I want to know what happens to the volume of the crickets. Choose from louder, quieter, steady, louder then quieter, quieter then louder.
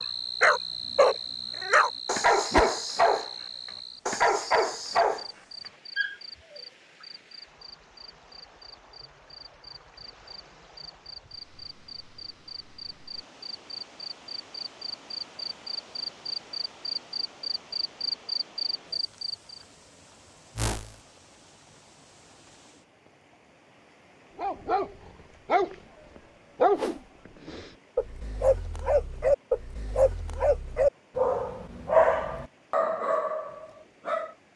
quieter then louder.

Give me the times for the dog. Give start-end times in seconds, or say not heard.
0.4-3.3, 4.0-5.2, 6.0-6.6, 24.4-26.9, 27.4-34.3.